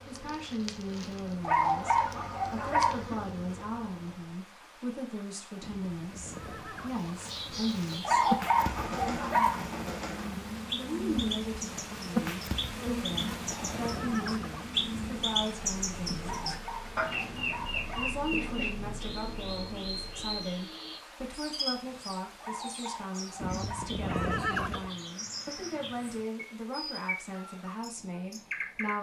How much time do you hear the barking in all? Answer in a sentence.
You can hear the barking for 7 seconds altogether.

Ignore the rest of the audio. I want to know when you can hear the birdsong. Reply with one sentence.
You can hear the birdsong from 7.2 to 28.9 s.